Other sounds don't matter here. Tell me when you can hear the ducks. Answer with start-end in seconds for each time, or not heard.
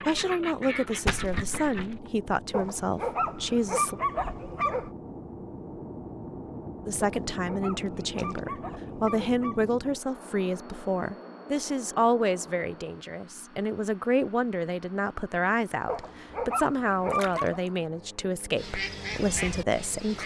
0.0-2.0, 18.6-20.2.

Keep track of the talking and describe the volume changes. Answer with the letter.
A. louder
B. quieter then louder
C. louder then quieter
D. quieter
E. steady
E.